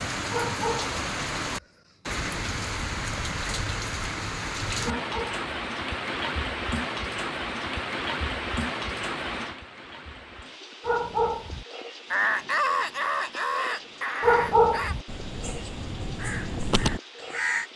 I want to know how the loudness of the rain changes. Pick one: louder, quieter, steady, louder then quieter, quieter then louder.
quieter.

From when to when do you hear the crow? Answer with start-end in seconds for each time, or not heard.
12.1-17.6.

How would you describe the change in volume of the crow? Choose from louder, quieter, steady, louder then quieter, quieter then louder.
quieter then louder.